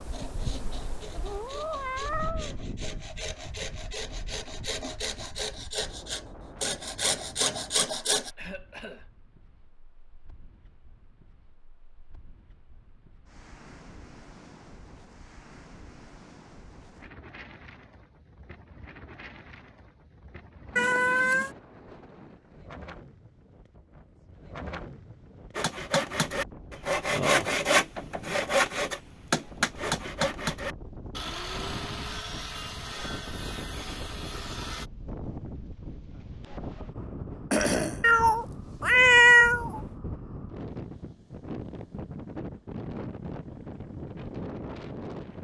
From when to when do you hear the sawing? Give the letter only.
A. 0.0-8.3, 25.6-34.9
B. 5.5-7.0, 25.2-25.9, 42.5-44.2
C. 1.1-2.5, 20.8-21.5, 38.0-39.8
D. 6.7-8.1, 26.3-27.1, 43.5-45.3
A.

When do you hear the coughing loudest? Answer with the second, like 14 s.
38 s.